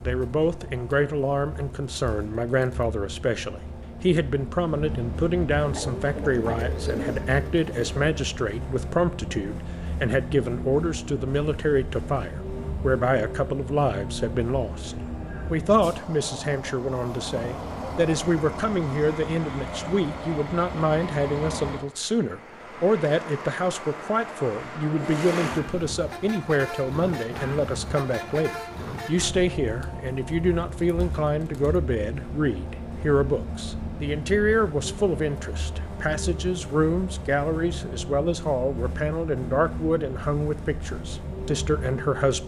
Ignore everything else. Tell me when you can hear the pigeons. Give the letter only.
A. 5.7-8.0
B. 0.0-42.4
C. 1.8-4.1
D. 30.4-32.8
A.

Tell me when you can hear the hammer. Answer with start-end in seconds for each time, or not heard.
not heard.